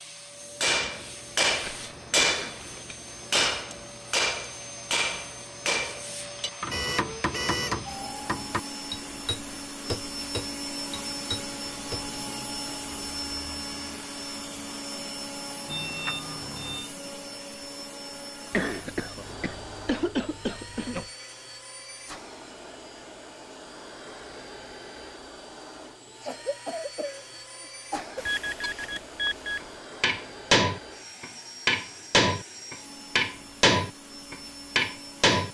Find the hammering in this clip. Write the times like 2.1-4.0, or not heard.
0.6-12.1, 30.0-35.4.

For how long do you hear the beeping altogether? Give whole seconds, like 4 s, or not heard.
4 s.